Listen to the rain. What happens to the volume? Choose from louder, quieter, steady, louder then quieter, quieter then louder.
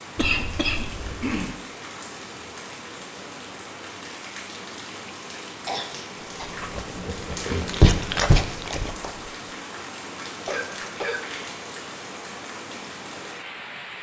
steady.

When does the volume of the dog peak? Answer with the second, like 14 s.
8 s.